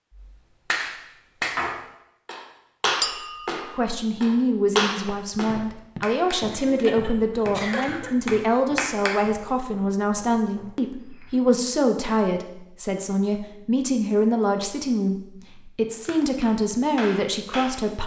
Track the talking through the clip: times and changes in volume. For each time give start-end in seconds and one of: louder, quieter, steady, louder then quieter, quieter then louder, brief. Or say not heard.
3.8-18.0 steady.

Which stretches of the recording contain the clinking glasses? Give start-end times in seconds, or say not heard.
3.0-3.8.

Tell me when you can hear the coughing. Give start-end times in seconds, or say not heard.
6.7-8.1.